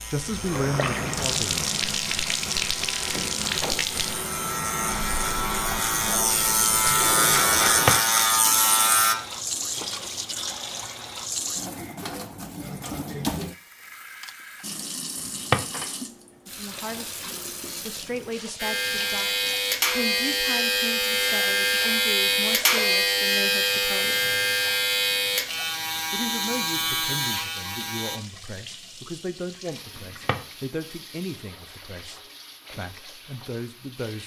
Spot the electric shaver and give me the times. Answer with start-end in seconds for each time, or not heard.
0.0-9.2, 18.6-28.2.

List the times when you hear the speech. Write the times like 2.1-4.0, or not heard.
0.1-1.6, 16.4-24.3, 26.1-34.2.